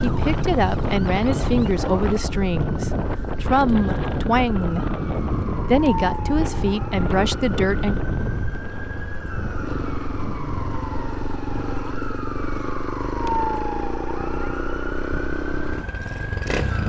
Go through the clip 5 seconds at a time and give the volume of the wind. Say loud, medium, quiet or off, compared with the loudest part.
loud, loud, off, off.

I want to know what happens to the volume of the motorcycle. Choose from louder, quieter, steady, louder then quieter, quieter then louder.
louder.